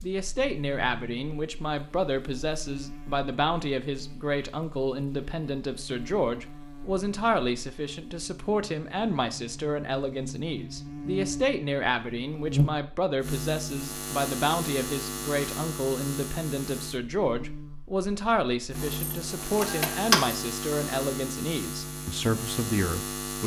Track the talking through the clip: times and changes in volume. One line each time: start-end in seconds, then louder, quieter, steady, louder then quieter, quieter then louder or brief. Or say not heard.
0.0-23.4 steady.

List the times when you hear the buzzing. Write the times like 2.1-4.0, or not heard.
0.0-23.4.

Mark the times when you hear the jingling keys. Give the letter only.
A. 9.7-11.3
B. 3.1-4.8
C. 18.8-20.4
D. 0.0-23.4
C.